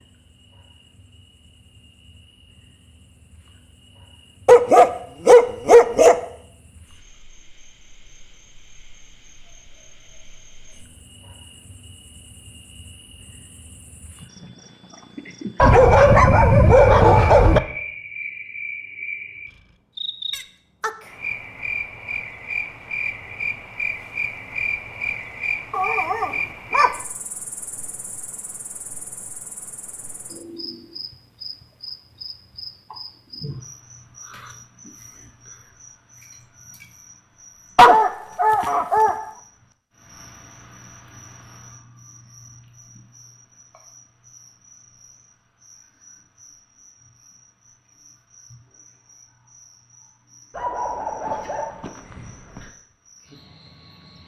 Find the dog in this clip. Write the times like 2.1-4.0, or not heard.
4.5-6.2, 15.6-17.6, 25.7-26.9, 37.8-39.2, 50.5-52.6.